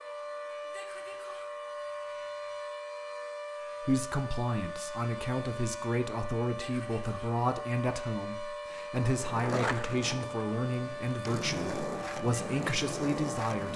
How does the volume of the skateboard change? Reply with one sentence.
The volume of the skateboard goes down, then up.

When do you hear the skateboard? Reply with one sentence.
The skateboard can be heard from 9.1 to 13.7 s.